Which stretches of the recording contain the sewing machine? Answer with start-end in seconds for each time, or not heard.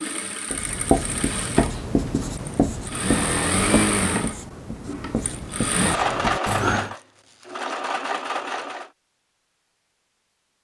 0.0-8.9.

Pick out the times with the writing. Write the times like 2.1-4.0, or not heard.
0.5-7.0.